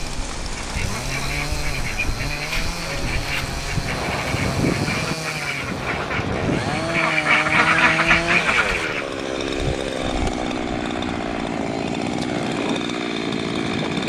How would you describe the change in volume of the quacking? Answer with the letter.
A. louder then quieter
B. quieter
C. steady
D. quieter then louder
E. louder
E.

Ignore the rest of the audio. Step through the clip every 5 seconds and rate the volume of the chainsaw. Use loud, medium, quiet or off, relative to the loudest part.
medium, loud, loud.